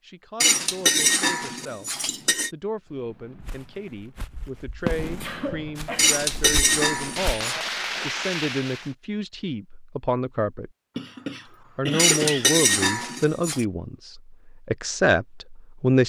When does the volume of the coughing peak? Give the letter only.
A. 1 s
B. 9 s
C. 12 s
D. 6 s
C.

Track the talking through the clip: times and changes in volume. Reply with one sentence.
You can hear the talking from 0.0 to 10.7 s, getting louder; and from 11.8 to 16.0 s, getting quieter then louder.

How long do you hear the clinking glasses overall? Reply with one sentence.
You can hear the clinking glasses for 5 seconds altogether.